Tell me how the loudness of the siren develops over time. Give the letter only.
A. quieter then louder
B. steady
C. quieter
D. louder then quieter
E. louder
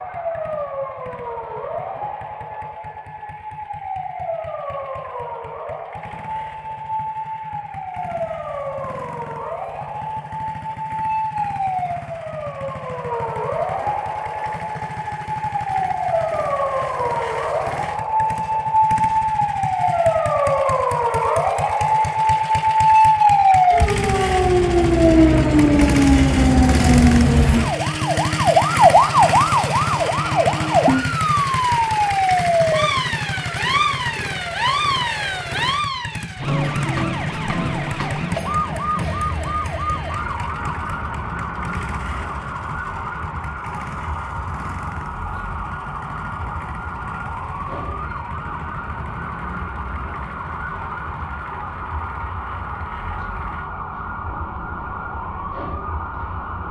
D.